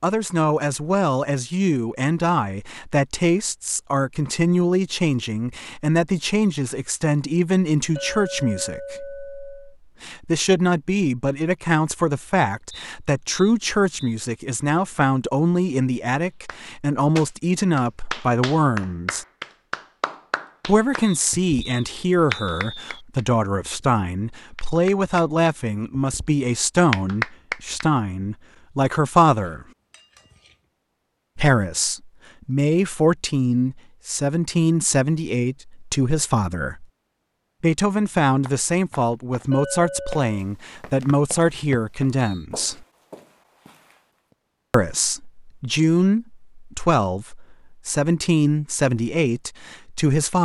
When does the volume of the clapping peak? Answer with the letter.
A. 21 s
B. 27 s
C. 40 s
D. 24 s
B.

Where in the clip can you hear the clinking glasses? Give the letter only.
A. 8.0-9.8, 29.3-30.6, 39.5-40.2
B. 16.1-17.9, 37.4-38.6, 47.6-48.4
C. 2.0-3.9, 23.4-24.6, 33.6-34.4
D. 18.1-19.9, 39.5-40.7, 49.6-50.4
A.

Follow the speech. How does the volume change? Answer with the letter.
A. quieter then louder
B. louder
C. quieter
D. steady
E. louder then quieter
D.